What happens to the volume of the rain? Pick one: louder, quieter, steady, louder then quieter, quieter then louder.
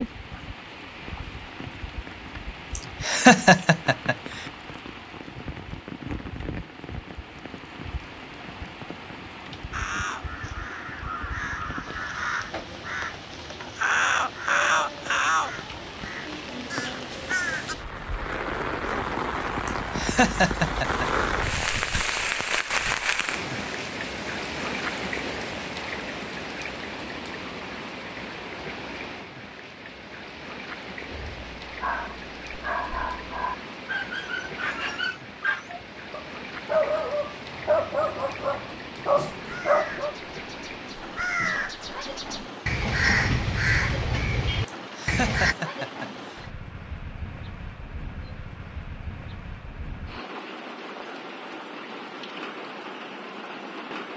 louder then quieter.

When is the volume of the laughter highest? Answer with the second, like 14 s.
3 s.